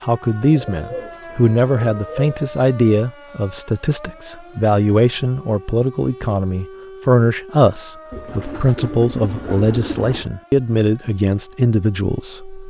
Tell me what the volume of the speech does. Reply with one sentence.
The volume of the speech stays about the same.